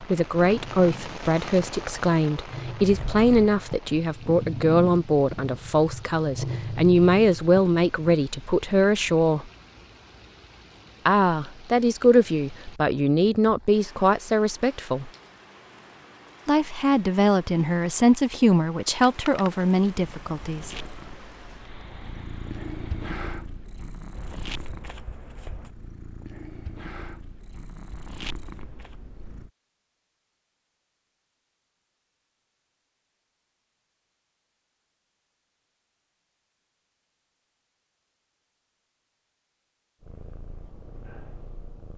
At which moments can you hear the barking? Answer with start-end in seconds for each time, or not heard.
not heard.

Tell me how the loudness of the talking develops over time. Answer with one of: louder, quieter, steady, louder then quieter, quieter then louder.
steady.